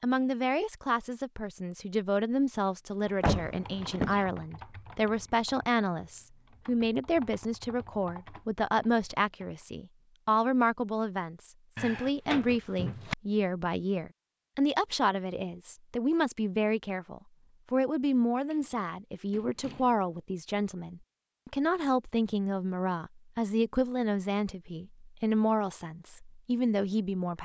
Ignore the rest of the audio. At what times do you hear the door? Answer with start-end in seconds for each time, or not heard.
3.2-4.2, 11.8-13.2, 18.5-20.1.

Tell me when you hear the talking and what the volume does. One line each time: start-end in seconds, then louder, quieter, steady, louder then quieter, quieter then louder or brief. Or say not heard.
0.0-27.4 steady.